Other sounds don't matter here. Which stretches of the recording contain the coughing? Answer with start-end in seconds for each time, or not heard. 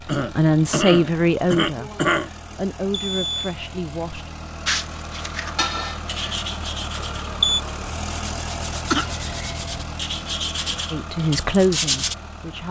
0.1-2.3, 5.5-6.4, 8.9-9.7.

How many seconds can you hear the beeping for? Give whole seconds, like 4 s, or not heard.
2 s.